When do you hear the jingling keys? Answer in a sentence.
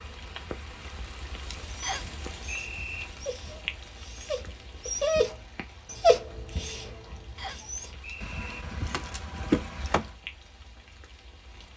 The jingling keys can be heard from 8.2 to 10.1 s.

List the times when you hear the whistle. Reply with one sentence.
The whistle can be heard from 1.8 to 3.0 s and from 7.3 to 8.6 s.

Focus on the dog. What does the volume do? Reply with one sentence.
The loudness of the dog goes up, then down.